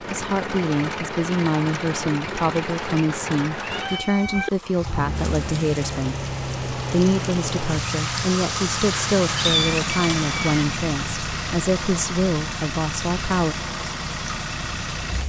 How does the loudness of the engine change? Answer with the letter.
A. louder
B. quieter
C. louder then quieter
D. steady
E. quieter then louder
D.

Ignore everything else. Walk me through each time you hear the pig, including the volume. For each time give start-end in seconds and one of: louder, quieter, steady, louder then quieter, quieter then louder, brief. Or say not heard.
not heard.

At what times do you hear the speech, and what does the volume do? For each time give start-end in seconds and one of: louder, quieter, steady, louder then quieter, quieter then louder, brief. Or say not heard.
0.0-13.6 steady.